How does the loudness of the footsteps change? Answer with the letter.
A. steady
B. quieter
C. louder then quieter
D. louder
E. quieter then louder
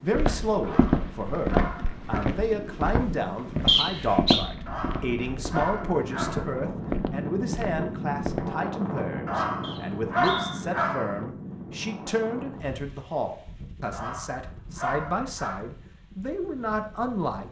B.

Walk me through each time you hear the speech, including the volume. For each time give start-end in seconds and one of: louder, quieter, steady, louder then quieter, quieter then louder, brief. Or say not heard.
0.0-17.4 steady.